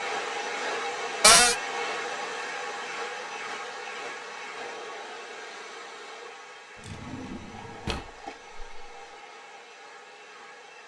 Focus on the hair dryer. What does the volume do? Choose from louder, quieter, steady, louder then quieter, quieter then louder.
quieter.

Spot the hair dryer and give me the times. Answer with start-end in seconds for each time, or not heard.
0.0-10.8.